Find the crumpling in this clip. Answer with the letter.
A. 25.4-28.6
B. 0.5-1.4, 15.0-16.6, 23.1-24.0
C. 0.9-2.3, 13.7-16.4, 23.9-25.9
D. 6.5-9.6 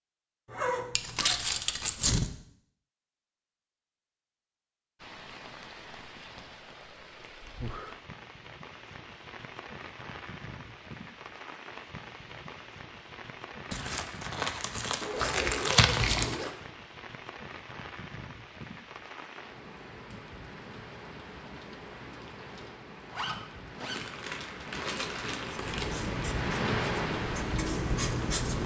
C.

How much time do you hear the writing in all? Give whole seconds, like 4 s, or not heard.
3 s.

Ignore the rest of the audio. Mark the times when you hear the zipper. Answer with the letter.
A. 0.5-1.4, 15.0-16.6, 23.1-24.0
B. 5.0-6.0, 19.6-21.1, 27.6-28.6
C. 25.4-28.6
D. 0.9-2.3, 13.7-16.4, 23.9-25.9
A.